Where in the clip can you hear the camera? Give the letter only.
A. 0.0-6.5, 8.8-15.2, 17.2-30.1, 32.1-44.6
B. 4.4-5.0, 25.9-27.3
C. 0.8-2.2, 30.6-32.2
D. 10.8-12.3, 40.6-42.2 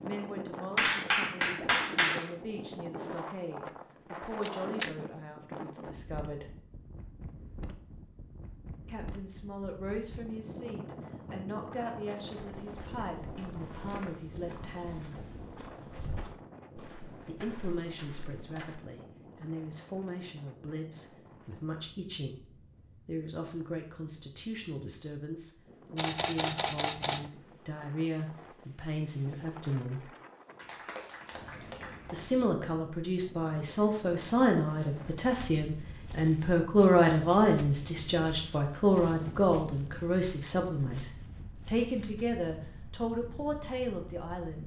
B.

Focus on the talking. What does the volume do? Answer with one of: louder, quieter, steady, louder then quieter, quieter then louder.
louder.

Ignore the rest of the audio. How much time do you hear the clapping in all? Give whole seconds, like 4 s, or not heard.
3 s.